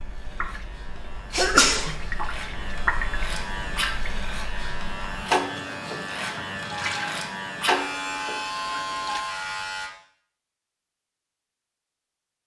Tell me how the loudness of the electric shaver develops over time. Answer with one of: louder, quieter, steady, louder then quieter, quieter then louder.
louder.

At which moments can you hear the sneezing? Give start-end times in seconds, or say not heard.
1.3-1.9.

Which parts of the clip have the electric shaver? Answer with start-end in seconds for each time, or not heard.
0.0-9.9.